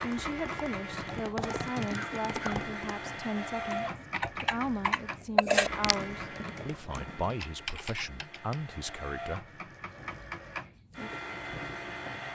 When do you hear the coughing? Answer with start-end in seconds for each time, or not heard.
1.9-2.6.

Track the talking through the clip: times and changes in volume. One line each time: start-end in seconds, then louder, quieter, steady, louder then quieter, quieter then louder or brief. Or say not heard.
0.0-9.4 steady.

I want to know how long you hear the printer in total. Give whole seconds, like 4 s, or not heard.
12 s.